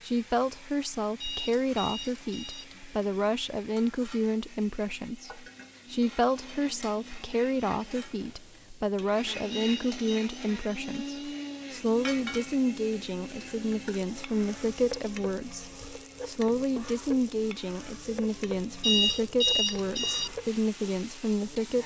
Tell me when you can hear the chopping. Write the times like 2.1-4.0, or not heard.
not heard.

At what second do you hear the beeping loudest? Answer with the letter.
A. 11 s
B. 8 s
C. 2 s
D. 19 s
D.